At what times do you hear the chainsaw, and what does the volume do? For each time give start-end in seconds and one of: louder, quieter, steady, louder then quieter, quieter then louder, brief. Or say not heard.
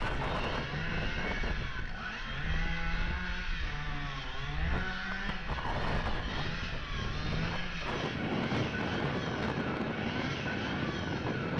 0.0-11.5 steady.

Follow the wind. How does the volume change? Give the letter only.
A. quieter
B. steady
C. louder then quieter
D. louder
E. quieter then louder
E.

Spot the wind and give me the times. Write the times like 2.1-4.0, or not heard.
0.0-11.5.